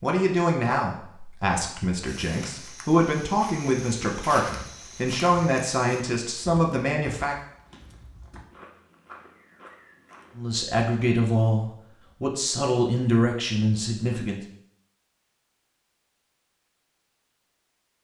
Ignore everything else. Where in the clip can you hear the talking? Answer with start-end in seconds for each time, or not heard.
0.0-7.3, 10.3-14.4.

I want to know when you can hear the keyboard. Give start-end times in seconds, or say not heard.
not heard.